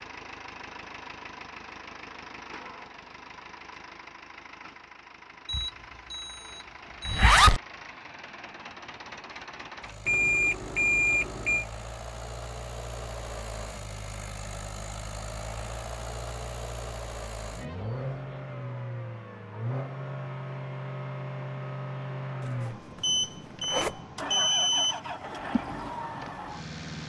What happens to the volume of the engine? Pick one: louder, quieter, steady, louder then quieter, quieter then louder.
louder.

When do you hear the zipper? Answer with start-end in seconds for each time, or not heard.
7.0-7.6, 22.4-24.0.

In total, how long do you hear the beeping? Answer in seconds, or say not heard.
5 s.